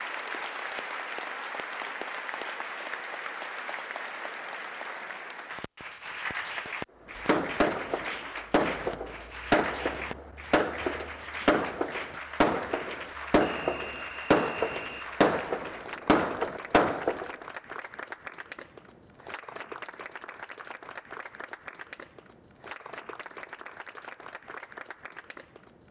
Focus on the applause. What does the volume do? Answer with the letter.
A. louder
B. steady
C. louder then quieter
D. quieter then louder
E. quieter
E.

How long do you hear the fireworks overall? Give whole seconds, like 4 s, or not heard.
10 s.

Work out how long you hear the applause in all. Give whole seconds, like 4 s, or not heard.
26 s.